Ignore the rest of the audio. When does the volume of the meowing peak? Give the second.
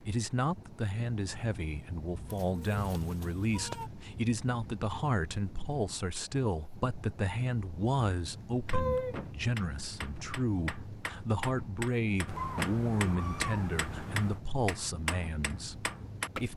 9 s.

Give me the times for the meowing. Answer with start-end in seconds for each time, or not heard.
2.3-3.9, 8.7-9.2, 12.2-14.4.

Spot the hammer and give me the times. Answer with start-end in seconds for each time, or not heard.
8.7-16.5.